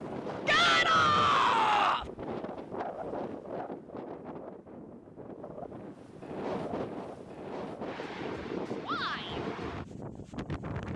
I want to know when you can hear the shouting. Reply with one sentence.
You can hear the shouting from 0.5 to 2.1 s and from 8.8 to 9.4 s.